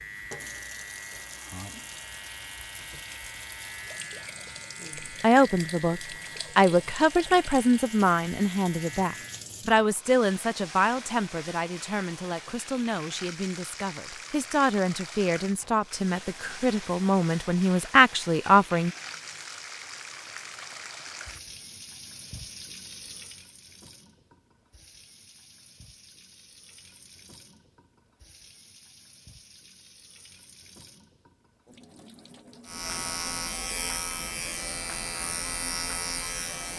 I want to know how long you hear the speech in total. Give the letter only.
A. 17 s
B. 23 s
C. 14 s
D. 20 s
C.